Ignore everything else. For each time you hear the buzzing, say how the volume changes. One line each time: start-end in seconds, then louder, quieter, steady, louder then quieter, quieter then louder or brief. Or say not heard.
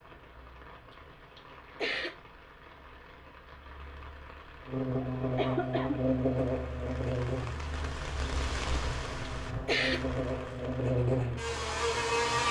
4.7-12.4 quieter then louder.